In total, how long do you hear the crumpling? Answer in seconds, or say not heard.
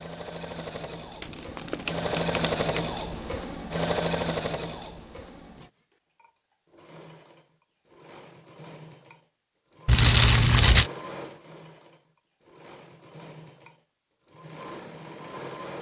3 s.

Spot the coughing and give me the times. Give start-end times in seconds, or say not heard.
not heard.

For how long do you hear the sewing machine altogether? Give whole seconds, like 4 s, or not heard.
16 s.